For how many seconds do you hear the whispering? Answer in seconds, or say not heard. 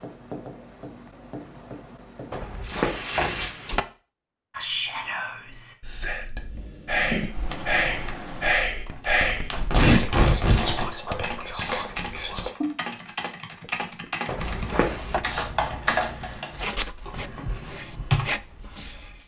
8 s.